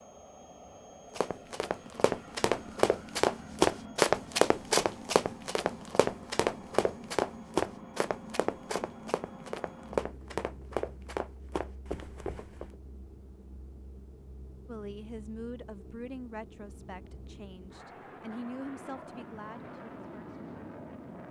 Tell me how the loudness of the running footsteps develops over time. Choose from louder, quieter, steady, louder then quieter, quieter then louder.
quieter.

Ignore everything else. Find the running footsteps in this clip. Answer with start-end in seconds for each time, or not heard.
1.1-12.8.